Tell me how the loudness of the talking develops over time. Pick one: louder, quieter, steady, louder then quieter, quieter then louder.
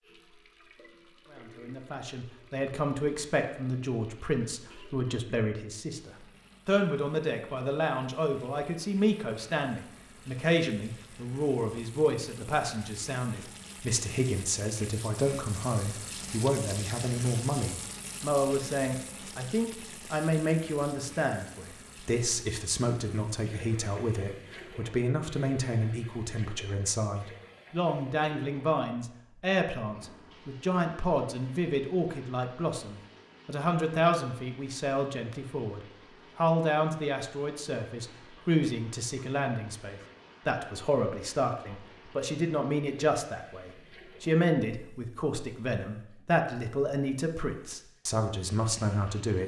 steady.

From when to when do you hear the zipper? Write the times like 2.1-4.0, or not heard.
not heard.